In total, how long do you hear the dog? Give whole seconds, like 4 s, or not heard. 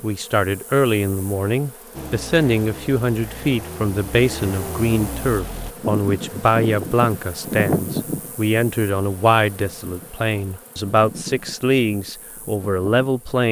not heard.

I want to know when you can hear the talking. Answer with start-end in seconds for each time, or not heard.
0.0-13.4.